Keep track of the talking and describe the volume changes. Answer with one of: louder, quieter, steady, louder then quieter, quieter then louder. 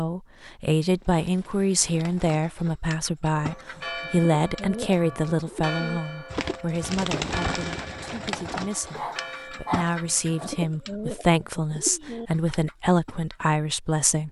quieter then louder.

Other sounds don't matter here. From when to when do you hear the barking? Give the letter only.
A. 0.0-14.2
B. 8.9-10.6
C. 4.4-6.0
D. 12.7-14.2
B.